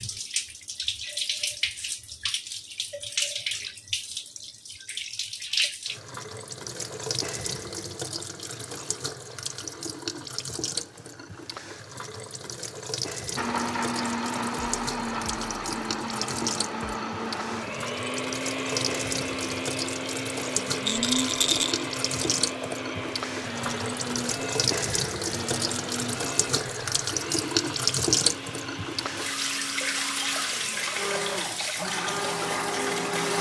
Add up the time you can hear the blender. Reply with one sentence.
The blender can be heard for 20 seconds in total.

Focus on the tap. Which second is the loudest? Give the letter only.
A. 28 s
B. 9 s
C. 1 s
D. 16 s
A.